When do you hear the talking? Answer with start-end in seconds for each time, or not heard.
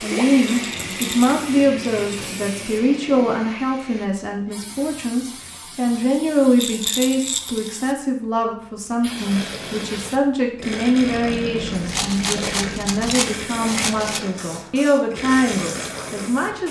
0.0-16.6.